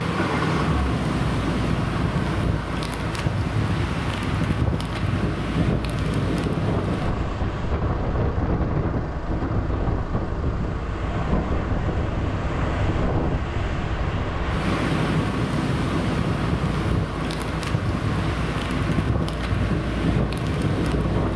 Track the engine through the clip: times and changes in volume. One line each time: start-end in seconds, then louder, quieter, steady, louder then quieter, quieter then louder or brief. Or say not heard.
0.0-21.3 steady.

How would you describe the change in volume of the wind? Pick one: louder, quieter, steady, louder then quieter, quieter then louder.
steady.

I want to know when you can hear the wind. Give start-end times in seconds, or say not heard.
0.0-21.3.